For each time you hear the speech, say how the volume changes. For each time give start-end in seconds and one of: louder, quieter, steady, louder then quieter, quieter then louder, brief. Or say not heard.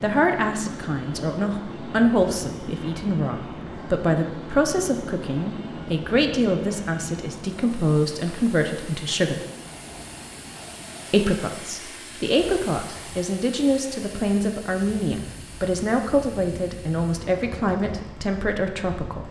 0.0-9.4 steady
11.1-19.2 steady.